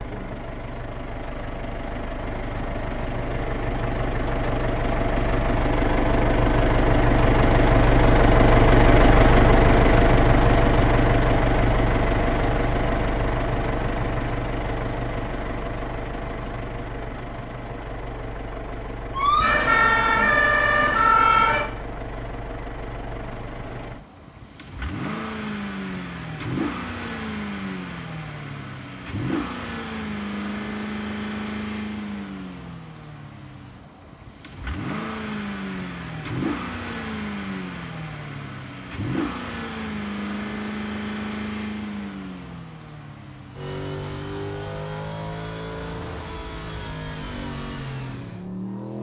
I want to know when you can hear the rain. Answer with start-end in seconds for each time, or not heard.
not heard.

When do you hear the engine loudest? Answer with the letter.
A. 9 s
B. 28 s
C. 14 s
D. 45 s
A.